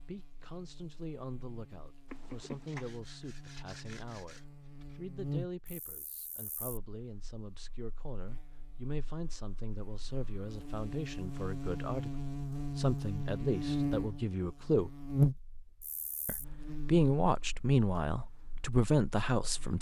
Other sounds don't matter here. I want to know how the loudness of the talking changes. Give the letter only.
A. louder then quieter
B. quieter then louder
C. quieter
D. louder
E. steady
D.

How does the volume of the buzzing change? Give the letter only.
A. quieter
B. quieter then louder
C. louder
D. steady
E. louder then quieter
E.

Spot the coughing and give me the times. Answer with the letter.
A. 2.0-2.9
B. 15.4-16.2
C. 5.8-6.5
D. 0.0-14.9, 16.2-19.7
A.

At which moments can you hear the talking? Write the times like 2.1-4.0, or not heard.
0.0-14.9, 16.2-19.7.